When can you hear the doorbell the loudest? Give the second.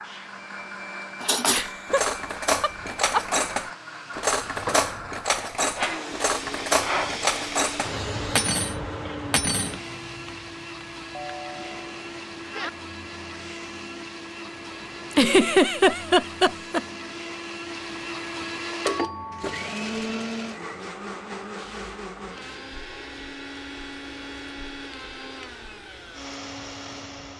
19 s.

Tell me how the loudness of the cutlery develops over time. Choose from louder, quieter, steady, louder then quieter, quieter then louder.
steady.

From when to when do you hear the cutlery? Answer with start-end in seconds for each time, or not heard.
1.2-9.8.